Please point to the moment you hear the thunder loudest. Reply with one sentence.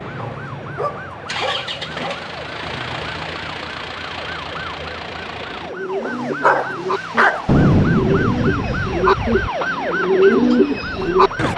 The volume of the thunder peaks at 8 seconds.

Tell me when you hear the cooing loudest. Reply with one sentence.
The volume of the cooing peaks at 10 seconds.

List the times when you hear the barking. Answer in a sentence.
The barking can be heard from 0.1 to 2.2 s and from 6.0 to 7.5 s.